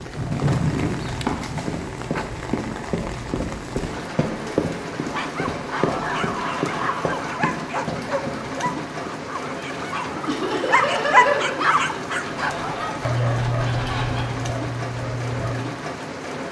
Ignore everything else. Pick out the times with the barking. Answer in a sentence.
The barking can be heard from 5.0 to 15.7 s.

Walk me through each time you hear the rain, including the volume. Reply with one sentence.
You can hear the rain from 0.0 to 16.4 s, at a steady volume.